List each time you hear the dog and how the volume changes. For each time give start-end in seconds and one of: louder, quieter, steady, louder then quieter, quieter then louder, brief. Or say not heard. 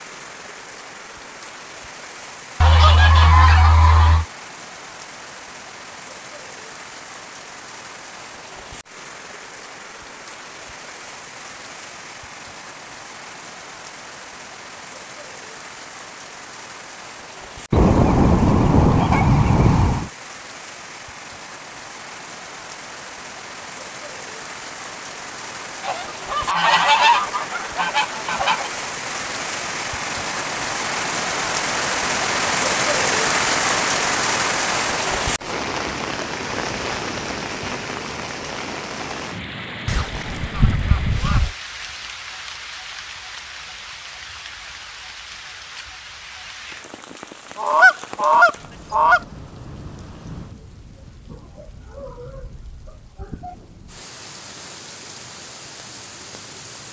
not heard.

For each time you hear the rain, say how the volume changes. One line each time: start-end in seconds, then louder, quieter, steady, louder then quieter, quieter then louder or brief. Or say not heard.
0.0-56.8 louder then quieter.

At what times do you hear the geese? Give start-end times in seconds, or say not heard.
2.6-4.2, 17.7-20.1, 25.8-28.7, 39.9-41.5, 47.5-49.2.